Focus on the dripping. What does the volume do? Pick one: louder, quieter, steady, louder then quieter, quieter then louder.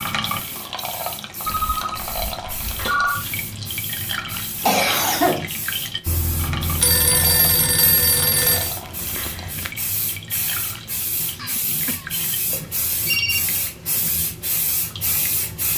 quieter.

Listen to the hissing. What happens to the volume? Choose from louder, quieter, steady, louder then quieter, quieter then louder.
louder.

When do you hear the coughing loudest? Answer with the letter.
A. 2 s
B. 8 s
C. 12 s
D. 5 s
D.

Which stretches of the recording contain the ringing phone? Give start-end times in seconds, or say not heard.
1.4-3.2, 6.0-8.7, 12.5-13.4.